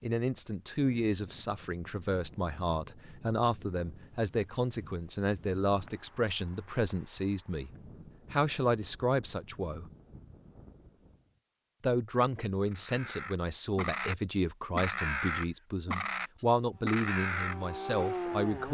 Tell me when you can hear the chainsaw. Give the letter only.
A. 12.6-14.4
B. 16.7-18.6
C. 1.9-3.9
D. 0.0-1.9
B.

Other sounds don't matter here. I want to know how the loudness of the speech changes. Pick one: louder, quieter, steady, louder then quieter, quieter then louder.
steady.